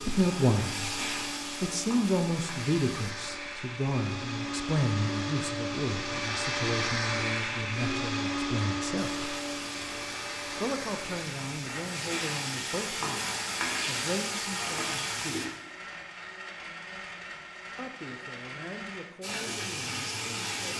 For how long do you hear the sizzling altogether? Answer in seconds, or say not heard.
11 s.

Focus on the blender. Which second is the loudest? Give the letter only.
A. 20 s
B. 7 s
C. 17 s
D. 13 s
B.